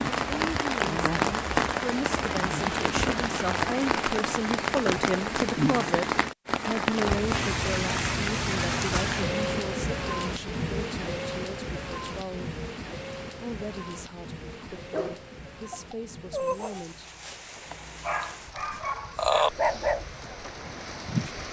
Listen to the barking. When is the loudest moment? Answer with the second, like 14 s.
19 s.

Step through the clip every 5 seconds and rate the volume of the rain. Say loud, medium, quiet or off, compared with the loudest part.
loud, loud, medium, quiet, quiet.